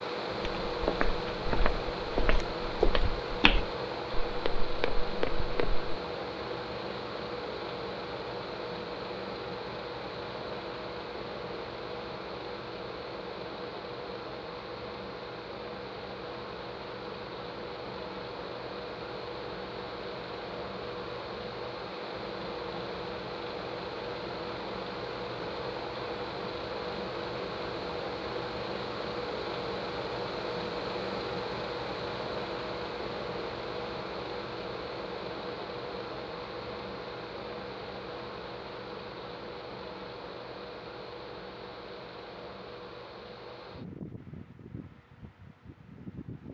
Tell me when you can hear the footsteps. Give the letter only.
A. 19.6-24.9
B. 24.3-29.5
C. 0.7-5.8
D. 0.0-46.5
C.